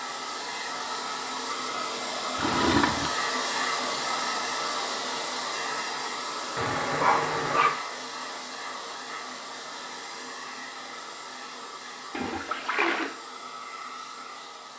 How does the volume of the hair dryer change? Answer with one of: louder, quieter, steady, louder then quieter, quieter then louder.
quieter.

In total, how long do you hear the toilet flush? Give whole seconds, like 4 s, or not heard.
3 s.